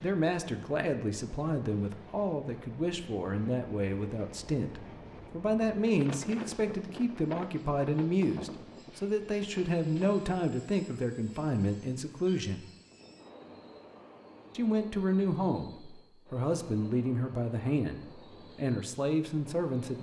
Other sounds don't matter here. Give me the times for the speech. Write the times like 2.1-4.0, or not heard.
0.0-12.7, 14.6-19.9.